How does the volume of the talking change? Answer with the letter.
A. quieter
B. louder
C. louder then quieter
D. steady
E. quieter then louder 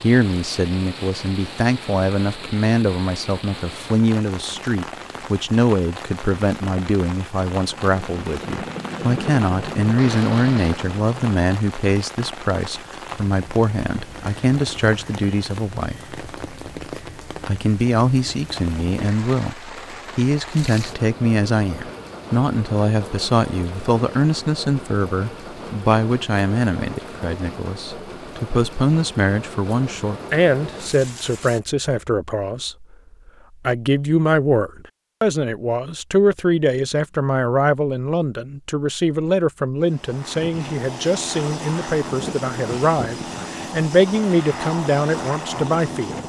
D.